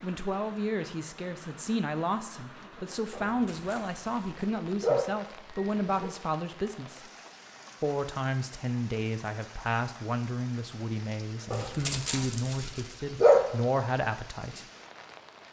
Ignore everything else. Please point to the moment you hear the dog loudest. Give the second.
13 s.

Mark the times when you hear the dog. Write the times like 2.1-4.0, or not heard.
3.1-6.1, 11.5-13.6.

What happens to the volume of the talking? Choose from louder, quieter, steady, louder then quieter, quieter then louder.
steady.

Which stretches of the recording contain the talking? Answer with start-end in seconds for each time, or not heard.
0.0-7.0, 7.8-14.7.